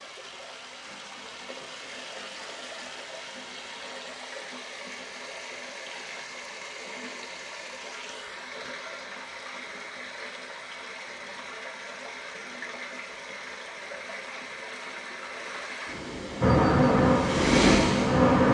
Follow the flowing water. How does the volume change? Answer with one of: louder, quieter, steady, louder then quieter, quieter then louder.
louder.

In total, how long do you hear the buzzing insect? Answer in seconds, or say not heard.
2 s.